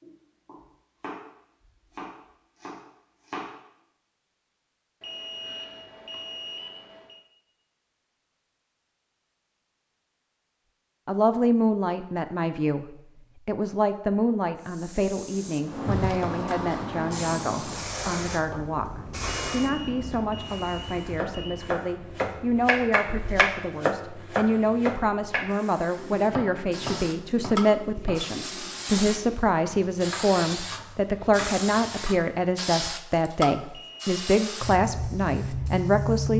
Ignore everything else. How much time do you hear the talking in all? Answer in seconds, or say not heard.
25 s.